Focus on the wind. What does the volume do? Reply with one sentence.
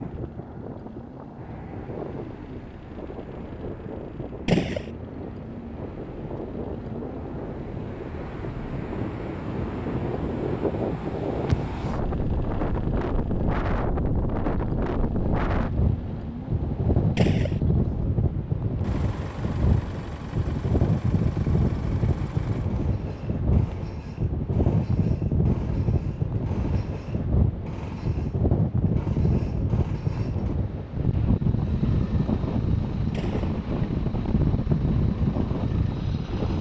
The loudness of the wind goes up.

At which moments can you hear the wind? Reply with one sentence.
You can hear the wind from 0.0 to 36.5 s.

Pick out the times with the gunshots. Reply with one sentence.
The gunshots can be heard from 4.5 to 4.9 s, from 17.1 to 17.6 s and from 33.1 to 33.5 s.